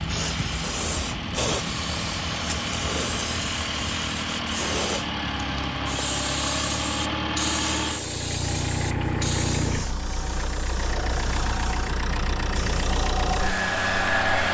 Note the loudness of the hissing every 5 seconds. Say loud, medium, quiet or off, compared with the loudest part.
loud, loud, medium.